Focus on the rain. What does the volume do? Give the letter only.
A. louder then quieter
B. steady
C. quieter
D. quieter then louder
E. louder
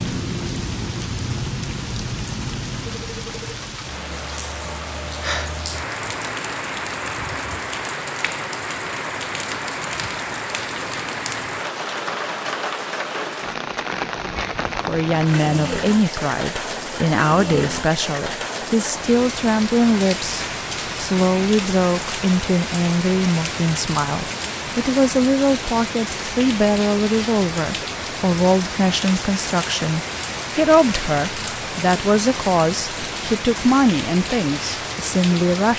B.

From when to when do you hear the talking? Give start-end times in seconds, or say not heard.
14.8-35.7.